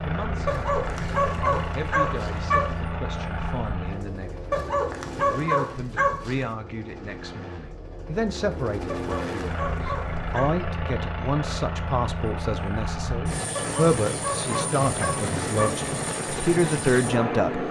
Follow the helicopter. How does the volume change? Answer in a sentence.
The loudness of the helicopter goes down, then up.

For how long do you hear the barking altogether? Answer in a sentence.
You can hear the barking for 8 seconds altogether.